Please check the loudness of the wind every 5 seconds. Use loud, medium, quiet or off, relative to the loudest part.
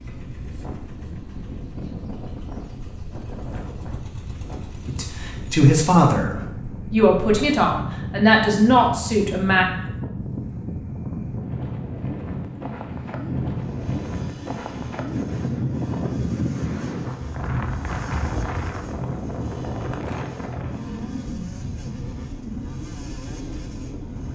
medium, medium, loud, loud, medium.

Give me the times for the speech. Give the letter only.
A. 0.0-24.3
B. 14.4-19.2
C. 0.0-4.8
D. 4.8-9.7
D.